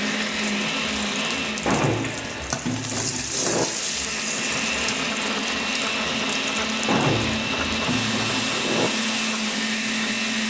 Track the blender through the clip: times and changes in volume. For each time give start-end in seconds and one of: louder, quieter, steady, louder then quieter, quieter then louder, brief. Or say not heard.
0.0-10.4 quieter then louder.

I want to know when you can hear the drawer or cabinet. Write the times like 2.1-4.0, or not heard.
1.6-3.6, 6.8-8.9.